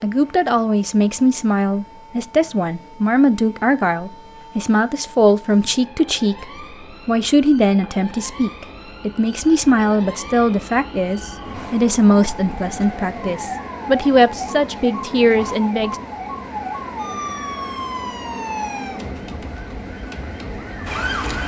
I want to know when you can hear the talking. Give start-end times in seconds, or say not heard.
0.0-6.5, 7.0-15.9.